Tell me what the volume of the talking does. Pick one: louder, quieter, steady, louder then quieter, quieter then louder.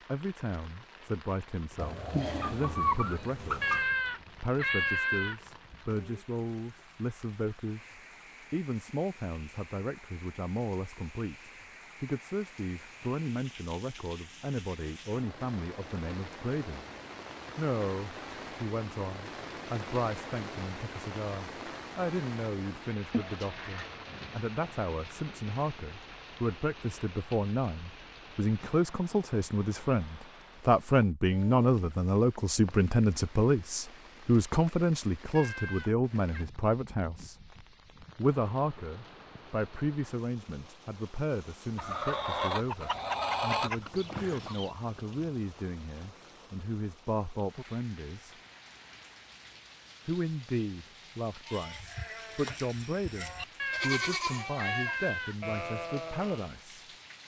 louder then quieter.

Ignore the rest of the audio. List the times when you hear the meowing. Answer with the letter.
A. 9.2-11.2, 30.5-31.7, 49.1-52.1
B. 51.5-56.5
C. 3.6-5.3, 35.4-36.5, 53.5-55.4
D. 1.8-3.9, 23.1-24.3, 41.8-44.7
C.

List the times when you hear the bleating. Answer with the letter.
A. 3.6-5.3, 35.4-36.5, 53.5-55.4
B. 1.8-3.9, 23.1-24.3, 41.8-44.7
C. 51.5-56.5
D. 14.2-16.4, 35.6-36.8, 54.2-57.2
C.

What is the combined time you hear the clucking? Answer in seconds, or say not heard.
6 s.